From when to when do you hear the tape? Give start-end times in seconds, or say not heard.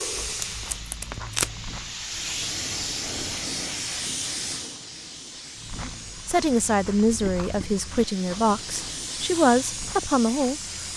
0.1-1.6.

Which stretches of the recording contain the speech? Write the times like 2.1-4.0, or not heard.
5.8-10.9.